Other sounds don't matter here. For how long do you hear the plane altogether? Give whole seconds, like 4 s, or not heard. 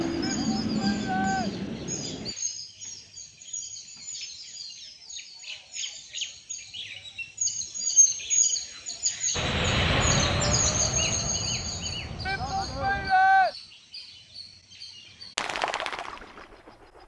6 s.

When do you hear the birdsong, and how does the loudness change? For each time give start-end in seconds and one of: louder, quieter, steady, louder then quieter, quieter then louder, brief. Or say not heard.
0.0-17.0 louder then quieter.